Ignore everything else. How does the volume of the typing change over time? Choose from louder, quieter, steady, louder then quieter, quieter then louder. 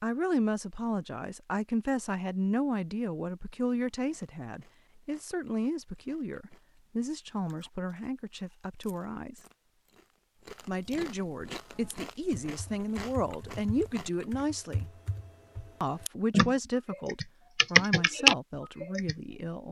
louder.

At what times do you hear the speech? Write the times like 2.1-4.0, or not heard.
0.0-9.4, 10.7-14.9, 15.8-19.6.